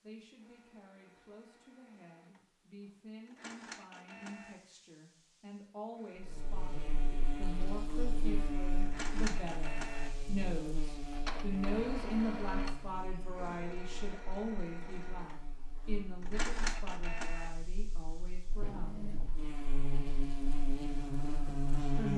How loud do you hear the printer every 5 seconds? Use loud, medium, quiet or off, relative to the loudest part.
medium, loud, loud, loud, off.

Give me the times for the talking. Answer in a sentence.
You can hear the talking from 0.0 to 19.1 s and from 21.4 to 22.1 s.